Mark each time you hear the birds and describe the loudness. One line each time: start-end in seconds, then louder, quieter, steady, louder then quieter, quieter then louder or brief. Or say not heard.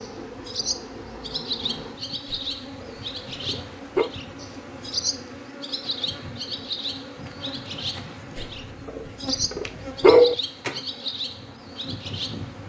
0.0-12.6 steady.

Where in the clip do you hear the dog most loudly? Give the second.
10 s.